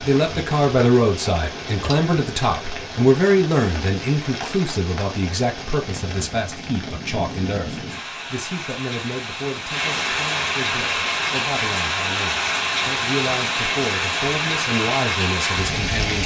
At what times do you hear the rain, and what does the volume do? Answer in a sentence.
You can hear the rain from 0.0 to 16.2 s, getting louder.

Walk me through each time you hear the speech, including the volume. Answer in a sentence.
You can hear the speech from 0.0 to 16.2 s, getting quieter then louder.